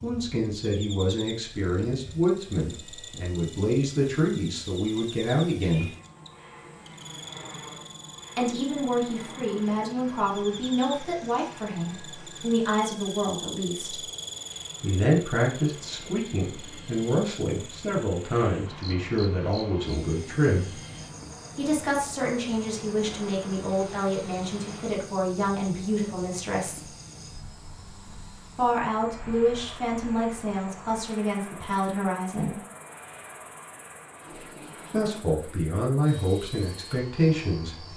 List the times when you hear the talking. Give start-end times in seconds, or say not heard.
0.0-5.9, 8.3-14.1, 14.8-20.8, 21.6-26.9, 28.6-32.5, 34.9-37.8.